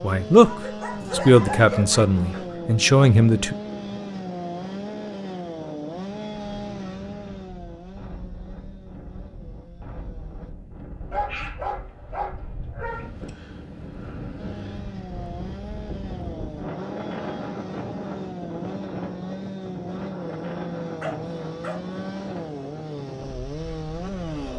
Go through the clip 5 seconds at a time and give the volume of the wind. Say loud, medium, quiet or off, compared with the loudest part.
medium, medium, medium, loud, loud.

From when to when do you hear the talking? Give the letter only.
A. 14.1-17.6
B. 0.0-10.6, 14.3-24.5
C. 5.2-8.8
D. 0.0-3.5
D.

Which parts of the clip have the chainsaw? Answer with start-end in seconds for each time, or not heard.
0.0-10.6, 14.3-24.5.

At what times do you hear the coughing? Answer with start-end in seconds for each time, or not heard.
not heard.